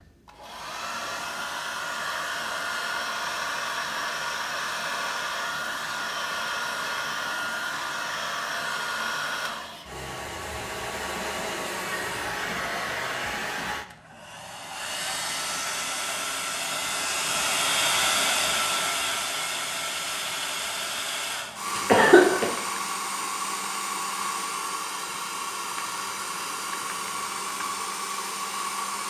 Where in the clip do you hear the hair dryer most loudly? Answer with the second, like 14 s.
18 s.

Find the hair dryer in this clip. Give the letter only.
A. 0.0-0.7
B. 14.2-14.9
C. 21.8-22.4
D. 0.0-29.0
D.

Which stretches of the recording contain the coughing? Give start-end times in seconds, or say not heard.
21.8-22.4.